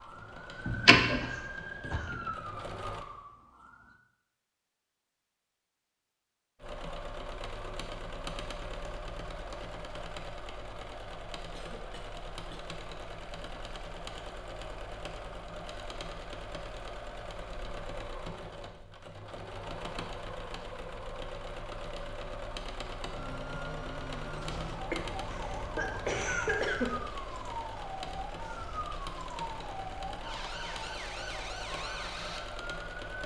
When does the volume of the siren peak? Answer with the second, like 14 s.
1 s.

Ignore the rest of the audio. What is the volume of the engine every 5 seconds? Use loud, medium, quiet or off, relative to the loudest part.
medium, loud, loud, loud, loud, loud, loud.